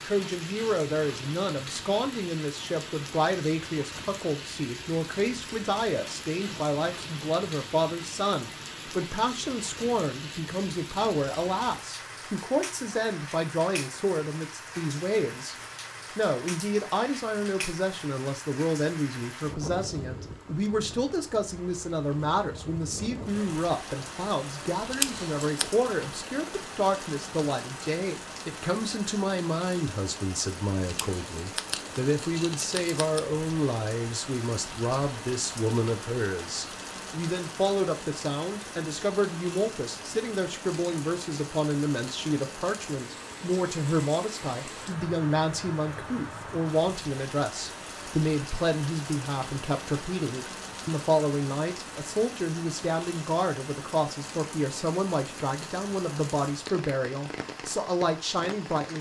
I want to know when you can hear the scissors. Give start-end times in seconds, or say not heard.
24.9-25.6, 30.9-33.2.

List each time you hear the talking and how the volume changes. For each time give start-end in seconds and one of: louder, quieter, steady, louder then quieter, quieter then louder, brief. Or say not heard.
0.0-15.6 steady
16.1-58.9 steady.